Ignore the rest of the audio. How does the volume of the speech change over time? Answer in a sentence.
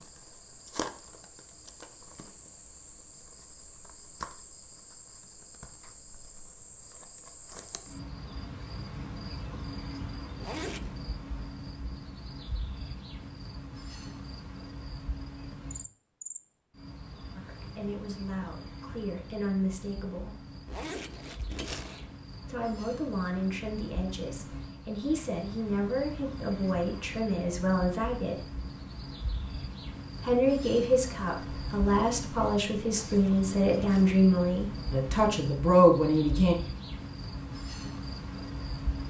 The loudness of the speech goes up.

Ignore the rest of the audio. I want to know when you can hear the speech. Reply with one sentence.
The speech can be heard from 17.4 to 20.4 s, from 22.4 to 28.4 s and from 30.2 to 36.5 s.